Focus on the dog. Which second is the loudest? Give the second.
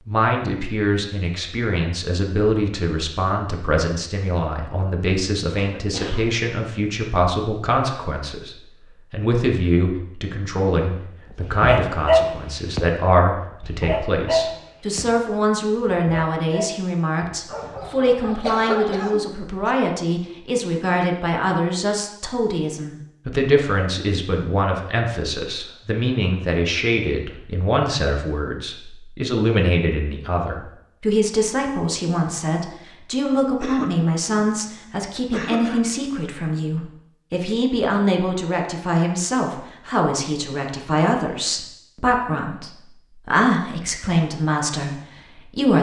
12 s.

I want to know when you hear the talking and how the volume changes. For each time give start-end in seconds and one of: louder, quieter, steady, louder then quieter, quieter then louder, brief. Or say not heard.
0.1-45.7 steady.